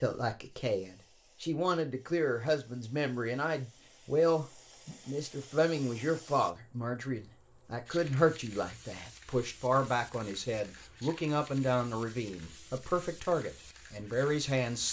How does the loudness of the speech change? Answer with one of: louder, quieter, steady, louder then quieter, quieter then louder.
steady.